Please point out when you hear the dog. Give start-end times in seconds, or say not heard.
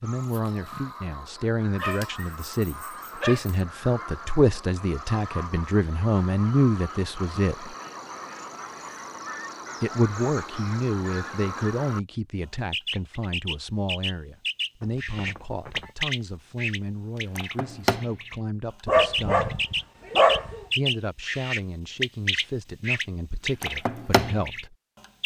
1.8-3.6, 18.9-20.6.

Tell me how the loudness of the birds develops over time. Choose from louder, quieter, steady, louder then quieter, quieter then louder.
louder.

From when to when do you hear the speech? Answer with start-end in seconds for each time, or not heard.
0.0-7.8, 9.8-19.6, 20.8-24.8.